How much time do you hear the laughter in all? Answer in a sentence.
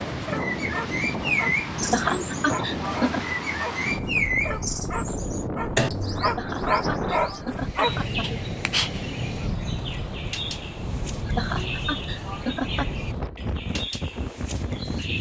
The laughter can be heard for 5 seconds in total.